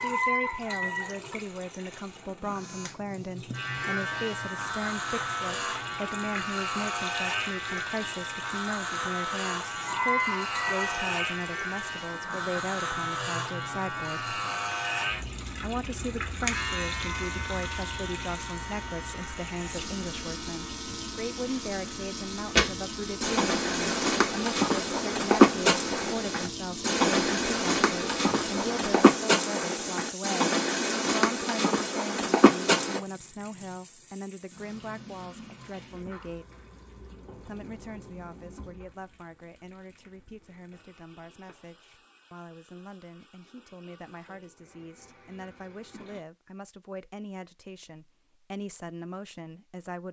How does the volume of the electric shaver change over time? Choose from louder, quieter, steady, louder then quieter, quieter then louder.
quieter.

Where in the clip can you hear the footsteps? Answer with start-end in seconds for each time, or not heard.
22.6-33.0.